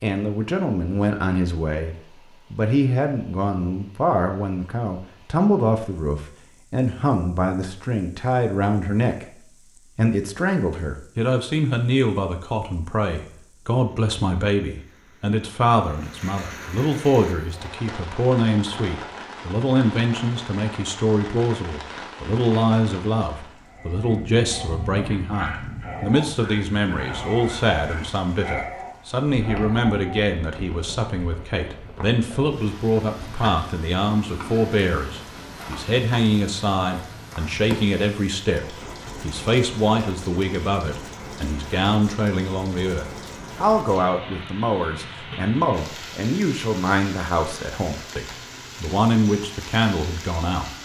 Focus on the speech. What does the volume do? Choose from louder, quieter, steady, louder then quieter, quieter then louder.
steady.